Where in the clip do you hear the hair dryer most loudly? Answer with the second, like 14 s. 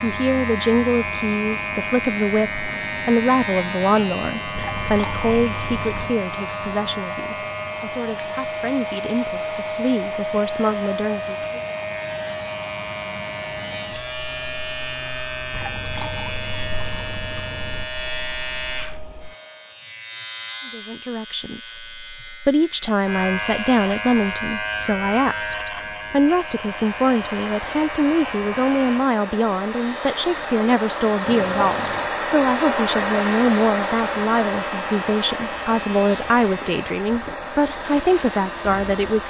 33 s.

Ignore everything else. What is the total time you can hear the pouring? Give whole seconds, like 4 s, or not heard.
5 s.